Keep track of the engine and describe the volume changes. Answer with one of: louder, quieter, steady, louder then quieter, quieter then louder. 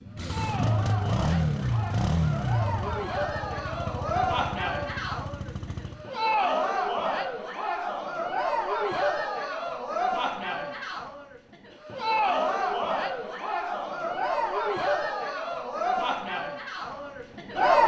quieter.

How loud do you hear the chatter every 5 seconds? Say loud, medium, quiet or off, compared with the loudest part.
medium, loud, loud, loud.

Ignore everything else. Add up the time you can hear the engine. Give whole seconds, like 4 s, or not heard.
6 s.